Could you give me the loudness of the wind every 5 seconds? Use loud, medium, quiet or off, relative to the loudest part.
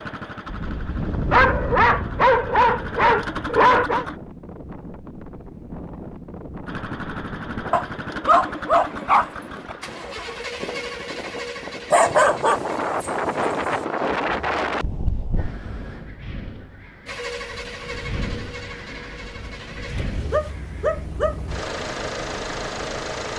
medium, medium, loud, medium, quiet.